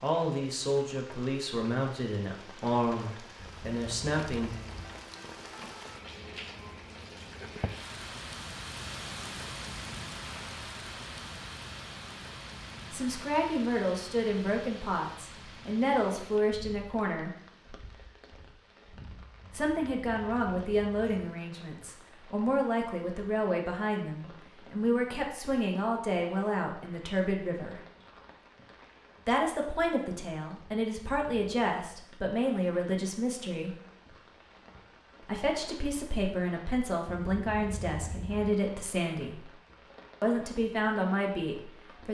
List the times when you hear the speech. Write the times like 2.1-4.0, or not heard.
0.0-4.5, 12.9-17.3, 19.5-27.8, 29.2-33.8, 35.2-39.5, 40.2-42.0.